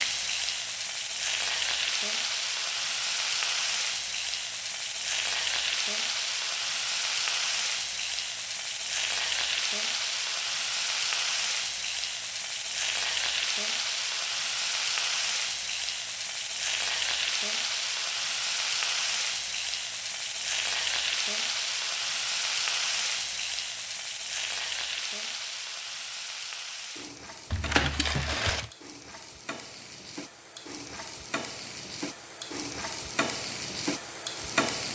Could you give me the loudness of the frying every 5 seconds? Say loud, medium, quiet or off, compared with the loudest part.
loud, loud, loud, loud, loud, medium, medium.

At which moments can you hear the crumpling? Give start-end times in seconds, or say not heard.
27.5-28.7.